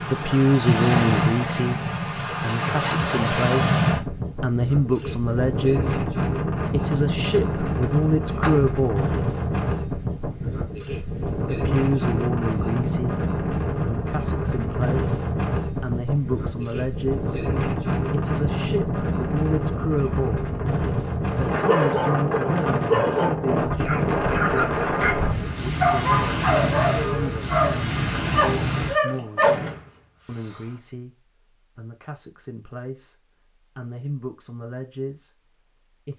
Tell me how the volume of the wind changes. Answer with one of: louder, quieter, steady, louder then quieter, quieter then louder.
steady.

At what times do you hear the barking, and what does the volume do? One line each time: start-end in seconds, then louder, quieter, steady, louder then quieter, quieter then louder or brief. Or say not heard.
21.2-29.6 steady.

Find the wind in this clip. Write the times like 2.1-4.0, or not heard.
0.0-28.9.